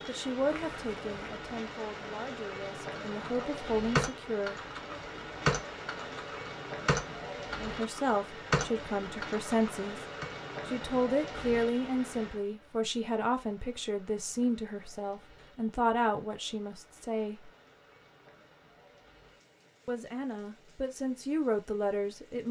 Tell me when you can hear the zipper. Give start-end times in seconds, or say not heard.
0.5-1.4.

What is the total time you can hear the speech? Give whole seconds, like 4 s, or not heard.
16 s.